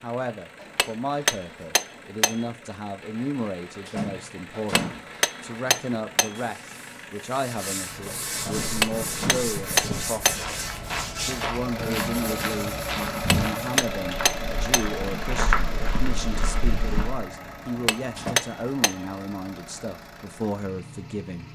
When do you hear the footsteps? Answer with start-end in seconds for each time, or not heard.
8.4-17.2.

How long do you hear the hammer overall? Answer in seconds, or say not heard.
9 s.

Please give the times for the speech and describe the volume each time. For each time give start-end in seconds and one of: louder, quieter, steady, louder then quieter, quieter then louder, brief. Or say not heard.
0.0-10.4 steady
11.2-21.5 steady.